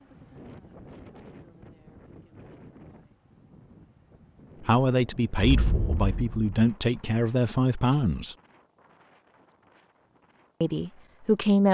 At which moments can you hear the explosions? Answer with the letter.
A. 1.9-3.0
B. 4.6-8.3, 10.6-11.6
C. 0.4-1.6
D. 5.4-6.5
D.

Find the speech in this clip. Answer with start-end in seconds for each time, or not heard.
4.6-8.3, 10.6-11.6.